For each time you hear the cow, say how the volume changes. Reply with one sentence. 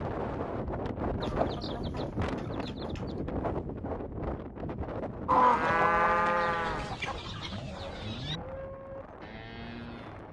The cow can be heard from 5.2 to 10.2 s, getting quieter.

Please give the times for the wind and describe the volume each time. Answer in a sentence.
The wind can be heard from 0.0 to 10.2 s, getting quieter.